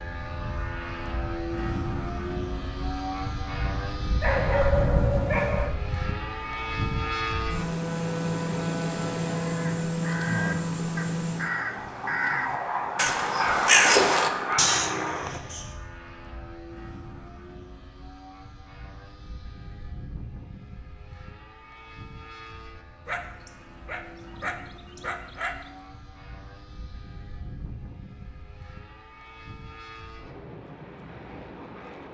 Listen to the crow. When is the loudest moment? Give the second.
14 s.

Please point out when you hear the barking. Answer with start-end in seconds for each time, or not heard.
4.2-5.8, 13.3-14.8, 23.1-25.7.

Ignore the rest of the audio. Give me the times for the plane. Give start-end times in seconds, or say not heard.
0.0-32.0.